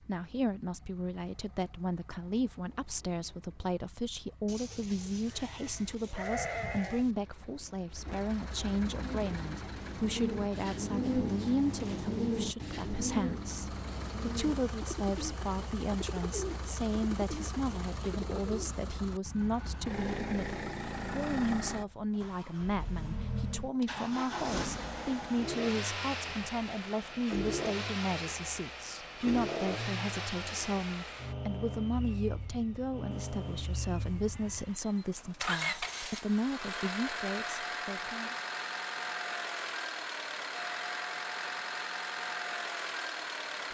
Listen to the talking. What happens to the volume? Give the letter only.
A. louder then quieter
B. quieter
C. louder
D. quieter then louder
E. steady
E.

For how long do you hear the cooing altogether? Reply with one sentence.
The cooing can be heard for 10 seconds in total.